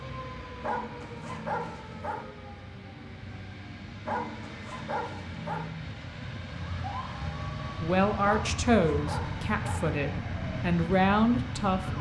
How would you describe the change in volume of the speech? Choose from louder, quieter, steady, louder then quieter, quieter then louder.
quieter then louder.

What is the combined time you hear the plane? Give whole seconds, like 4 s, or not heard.
12 s.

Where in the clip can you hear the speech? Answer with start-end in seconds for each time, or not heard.
7.8-11.9.